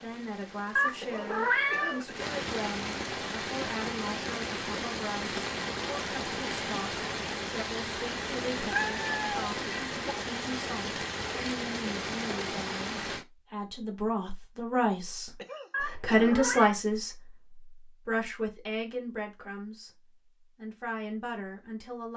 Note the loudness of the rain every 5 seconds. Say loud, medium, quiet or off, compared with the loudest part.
loud, loud, loud, off, off.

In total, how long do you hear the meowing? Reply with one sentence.
You can hear the meowing for 4 seconds altogether.